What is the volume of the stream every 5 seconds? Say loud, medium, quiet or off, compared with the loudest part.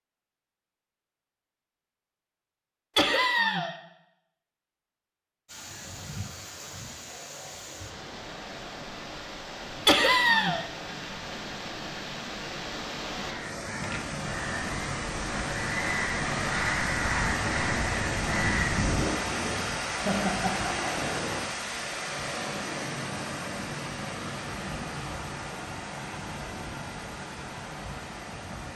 off, medium, medium, loud, loud, medium.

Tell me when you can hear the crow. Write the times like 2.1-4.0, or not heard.
13.3-18.9.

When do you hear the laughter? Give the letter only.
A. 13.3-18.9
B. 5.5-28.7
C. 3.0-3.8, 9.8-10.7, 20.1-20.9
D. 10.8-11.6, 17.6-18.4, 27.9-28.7
C.